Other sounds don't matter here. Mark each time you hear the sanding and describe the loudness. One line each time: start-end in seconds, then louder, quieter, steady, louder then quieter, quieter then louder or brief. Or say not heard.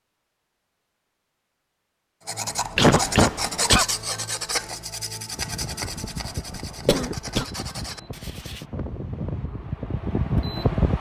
2.2-8.7 quieter.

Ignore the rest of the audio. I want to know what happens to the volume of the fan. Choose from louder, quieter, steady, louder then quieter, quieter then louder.
louder.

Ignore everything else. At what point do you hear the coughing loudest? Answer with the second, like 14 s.
3 s.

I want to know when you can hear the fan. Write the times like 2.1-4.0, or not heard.
5.3-10.9.